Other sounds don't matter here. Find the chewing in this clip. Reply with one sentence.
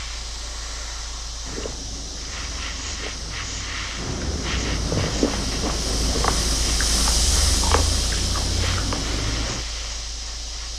The chewing can be heard from 1.4 to 9.7 s.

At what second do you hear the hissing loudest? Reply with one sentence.
The loudest moment of the hissing is at 7 seconds.